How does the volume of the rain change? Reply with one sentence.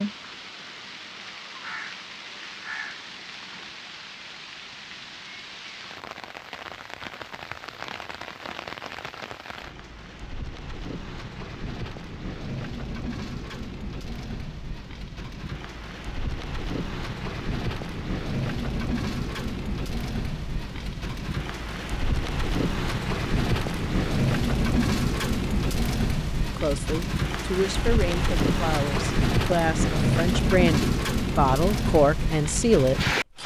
The loudness of the rain goes up.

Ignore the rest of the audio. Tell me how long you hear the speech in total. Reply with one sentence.
The speech can be heard for 7 seconds in total.